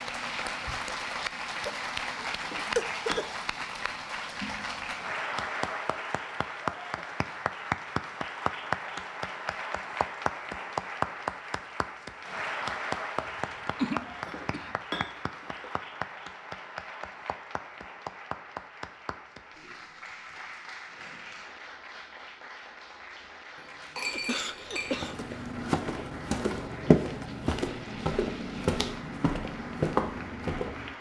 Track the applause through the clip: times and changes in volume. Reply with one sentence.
The applause can be heard from 0.0 to 30.9 s, getting quieter.